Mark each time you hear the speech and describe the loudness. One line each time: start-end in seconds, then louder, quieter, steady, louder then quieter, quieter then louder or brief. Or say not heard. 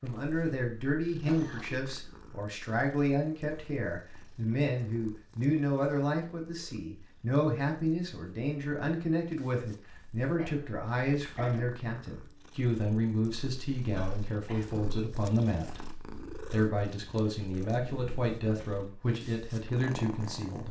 0.0-20.6 steady.